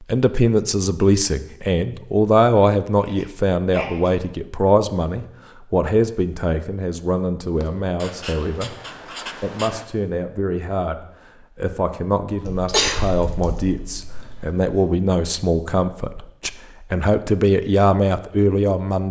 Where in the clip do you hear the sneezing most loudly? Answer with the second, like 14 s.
13 s.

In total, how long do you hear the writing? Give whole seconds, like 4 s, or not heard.
2 s.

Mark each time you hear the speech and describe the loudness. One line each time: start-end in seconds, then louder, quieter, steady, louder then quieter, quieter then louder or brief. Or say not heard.
0.1-19.0 quieter then louder.